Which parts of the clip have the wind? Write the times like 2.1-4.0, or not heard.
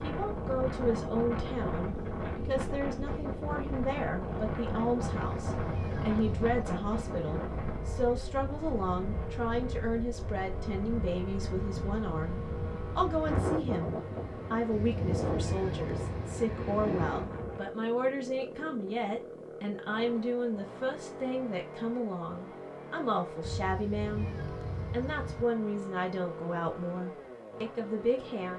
0.0-17.7.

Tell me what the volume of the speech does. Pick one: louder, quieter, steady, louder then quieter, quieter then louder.
steady.